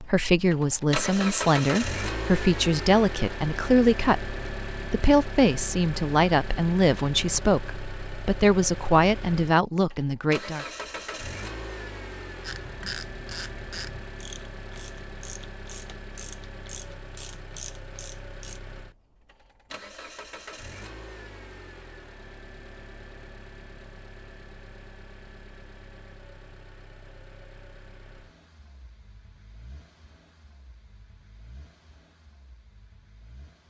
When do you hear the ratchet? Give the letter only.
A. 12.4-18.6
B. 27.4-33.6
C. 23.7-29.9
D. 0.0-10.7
A.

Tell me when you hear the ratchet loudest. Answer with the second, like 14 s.
13 s.